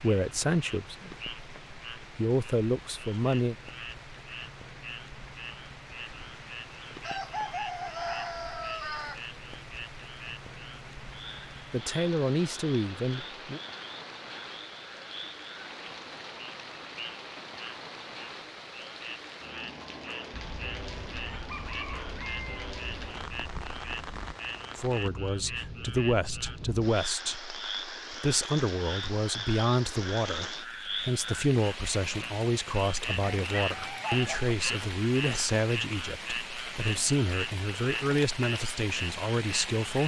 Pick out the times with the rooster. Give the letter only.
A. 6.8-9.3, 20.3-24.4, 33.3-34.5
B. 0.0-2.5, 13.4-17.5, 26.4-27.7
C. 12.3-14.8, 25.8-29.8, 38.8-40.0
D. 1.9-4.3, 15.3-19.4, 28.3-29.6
A.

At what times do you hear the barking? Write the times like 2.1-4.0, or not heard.
not heard.